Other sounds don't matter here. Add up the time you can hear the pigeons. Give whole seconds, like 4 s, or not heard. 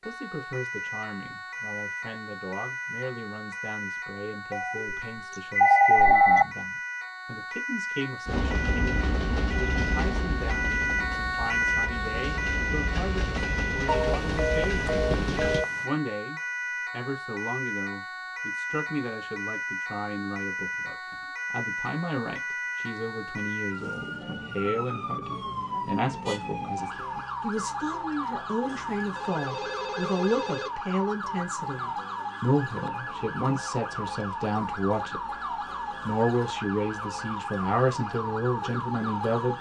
not heard.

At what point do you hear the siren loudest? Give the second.
11 s.